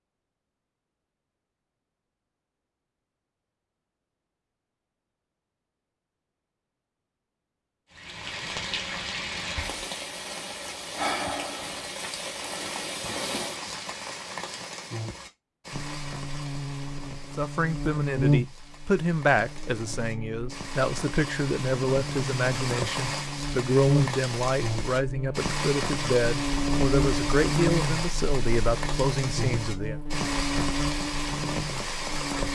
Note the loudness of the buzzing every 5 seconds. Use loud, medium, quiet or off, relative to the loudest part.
off, off, off, loud, loud, loud, loud.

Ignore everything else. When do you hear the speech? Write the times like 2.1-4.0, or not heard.
17.4-30.0.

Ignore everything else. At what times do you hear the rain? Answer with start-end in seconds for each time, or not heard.
7.9-32.5.